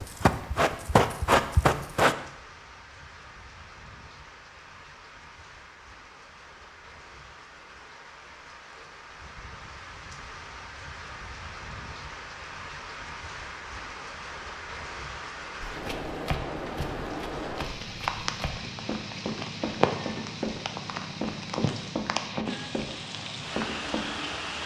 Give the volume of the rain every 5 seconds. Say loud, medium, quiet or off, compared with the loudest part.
quiet, quiet, medium, loud, loud.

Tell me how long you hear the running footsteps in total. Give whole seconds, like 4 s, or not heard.
11 s.